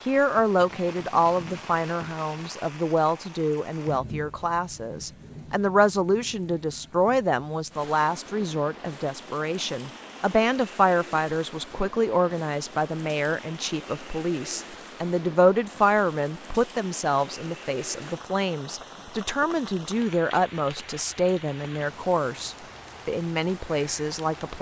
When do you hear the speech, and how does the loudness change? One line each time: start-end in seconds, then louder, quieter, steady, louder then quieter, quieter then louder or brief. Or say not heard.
0.0-24.5 steady.